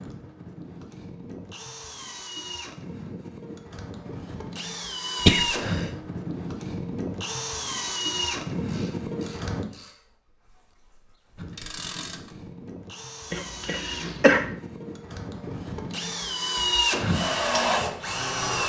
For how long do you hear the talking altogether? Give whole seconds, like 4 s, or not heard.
not heard.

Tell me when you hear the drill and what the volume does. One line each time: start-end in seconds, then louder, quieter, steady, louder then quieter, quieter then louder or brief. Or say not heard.
0.0-9.7 louder
11.3-18.6 louder.